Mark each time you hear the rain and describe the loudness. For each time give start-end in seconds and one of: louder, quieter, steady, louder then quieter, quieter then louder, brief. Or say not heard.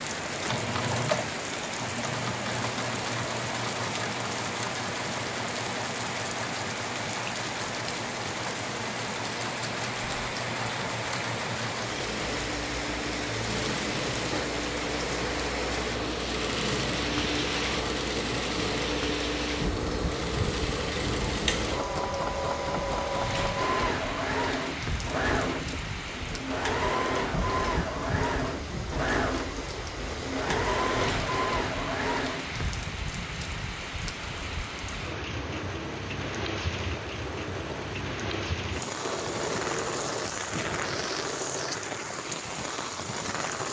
0.0-43.6 steady.